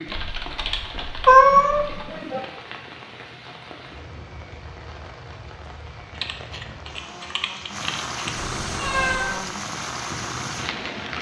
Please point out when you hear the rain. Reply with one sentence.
The rain can be heard from 0.0 to 11.1 s.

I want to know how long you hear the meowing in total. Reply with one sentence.
The meowing can be heard for 2 seconds in total.